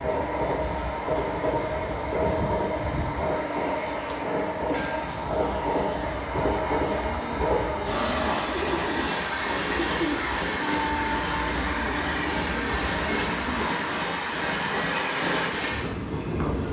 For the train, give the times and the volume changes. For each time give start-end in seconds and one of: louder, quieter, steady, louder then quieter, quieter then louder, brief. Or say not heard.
0.0-16.6 steady.